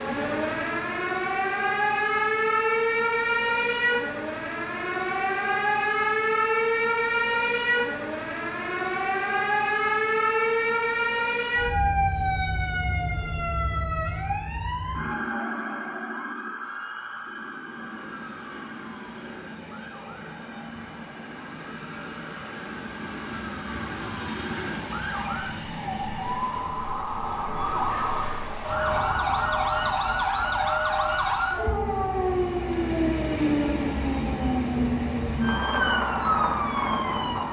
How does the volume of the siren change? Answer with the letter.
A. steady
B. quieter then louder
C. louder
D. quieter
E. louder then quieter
B.